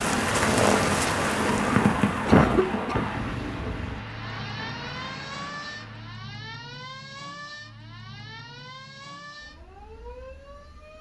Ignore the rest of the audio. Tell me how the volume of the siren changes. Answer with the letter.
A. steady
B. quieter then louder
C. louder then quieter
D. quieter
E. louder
D.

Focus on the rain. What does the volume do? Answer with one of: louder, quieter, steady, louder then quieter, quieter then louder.
quieter.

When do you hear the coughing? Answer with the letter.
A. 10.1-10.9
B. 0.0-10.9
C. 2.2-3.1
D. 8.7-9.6
C.